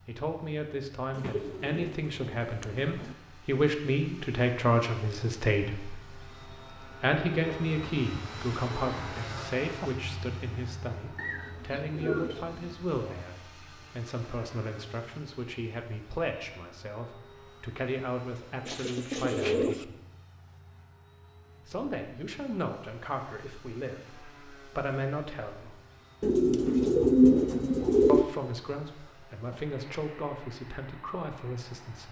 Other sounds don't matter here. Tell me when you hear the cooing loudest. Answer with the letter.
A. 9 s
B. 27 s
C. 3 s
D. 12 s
B.